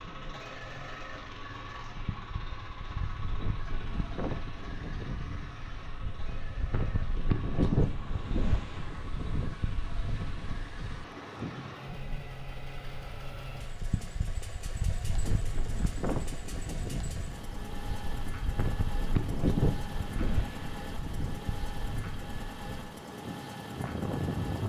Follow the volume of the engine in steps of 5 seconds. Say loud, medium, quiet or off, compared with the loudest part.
loud, medium, loud, loud, loud.